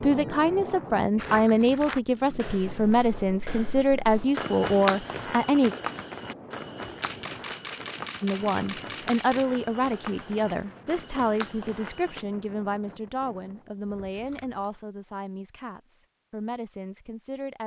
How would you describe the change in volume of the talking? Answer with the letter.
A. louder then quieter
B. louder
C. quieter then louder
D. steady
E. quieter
E.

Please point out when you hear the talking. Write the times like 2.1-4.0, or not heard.
0.0-5.8, 8.2-17.6.